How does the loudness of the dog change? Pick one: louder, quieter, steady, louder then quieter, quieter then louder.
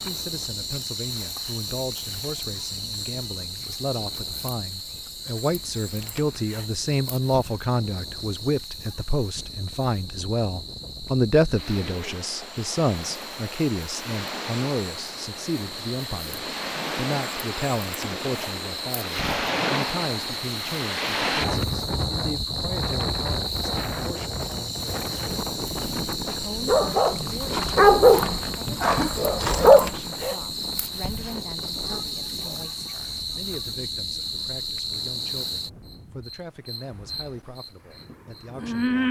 quieter.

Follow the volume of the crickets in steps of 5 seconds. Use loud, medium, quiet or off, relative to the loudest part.
loud, medium, medium, medium, loud, loud, loud, loud.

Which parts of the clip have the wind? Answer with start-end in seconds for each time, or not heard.
0.0-39.0.